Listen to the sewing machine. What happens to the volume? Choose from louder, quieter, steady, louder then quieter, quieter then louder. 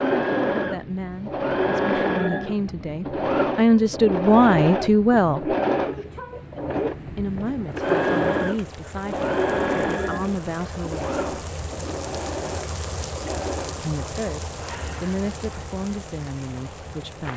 quieter.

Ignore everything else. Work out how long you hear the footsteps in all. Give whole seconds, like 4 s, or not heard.
not heard.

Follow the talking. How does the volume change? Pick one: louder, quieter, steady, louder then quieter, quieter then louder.
louder then quieter.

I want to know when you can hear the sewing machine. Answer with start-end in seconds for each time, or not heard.
0.0-13.8.